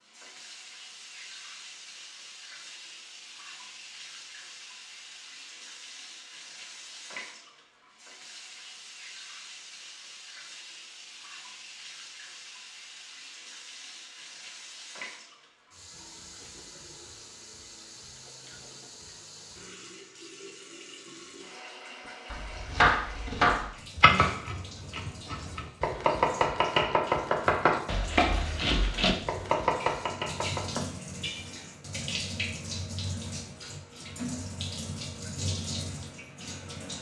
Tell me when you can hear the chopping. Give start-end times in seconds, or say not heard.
22.3-30.9.